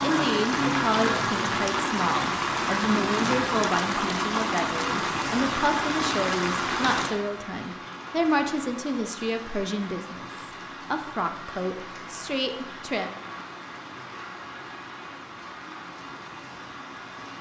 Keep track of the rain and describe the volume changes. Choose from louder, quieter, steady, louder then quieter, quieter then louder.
quieter.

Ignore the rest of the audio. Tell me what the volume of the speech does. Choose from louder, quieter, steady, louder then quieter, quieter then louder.
steady.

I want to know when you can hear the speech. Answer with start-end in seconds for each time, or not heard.
0.0-13.1.